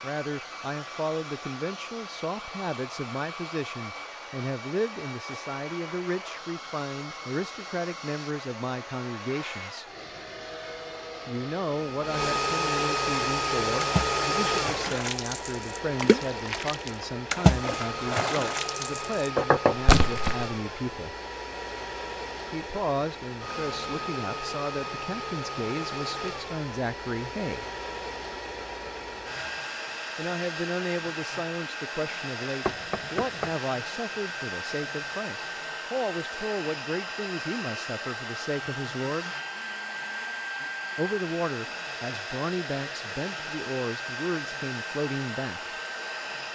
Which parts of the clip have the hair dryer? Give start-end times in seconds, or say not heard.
0.0-46.4.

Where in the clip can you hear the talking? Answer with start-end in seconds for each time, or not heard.
0.0-9.8, 11.2-21.1, 22.5-27.6, 30.1-39.4, 41.0-45.8.